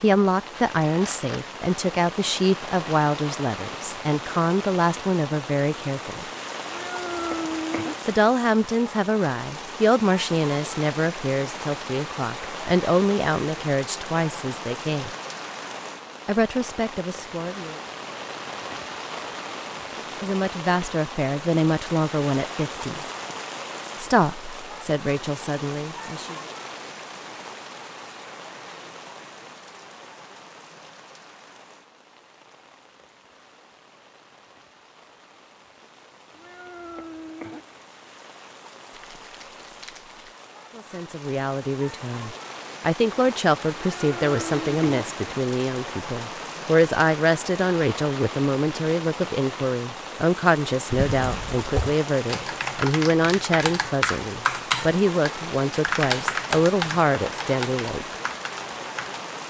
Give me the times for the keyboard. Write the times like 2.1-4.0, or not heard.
51.0-59.2.